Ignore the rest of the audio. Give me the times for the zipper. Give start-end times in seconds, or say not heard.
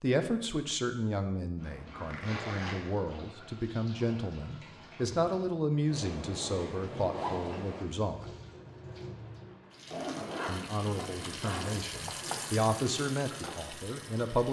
2.0-2.9, 5.9-7.8, 9.8-11.8.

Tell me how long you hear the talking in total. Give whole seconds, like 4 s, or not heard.
12 s.